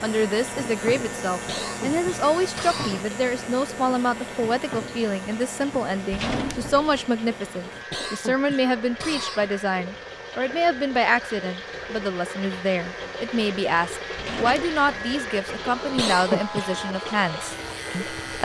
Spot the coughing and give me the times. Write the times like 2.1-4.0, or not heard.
1.4-3.1, 7.9-9.6, 15.9-16.6.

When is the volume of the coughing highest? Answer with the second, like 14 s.
16 s.